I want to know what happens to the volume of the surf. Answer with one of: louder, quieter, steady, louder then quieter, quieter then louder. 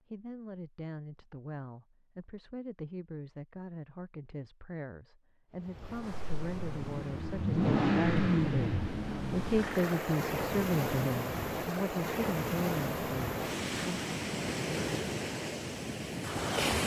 louder.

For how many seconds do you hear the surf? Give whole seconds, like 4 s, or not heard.
11 s.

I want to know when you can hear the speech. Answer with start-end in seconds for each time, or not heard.
0.1-14.0.